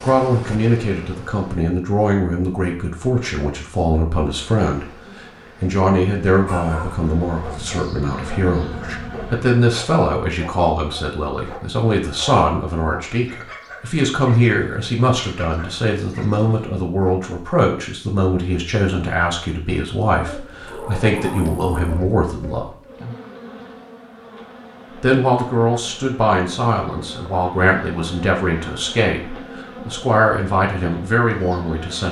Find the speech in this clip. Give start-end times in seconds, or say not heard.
0.0-22.7, 25.0-32.0.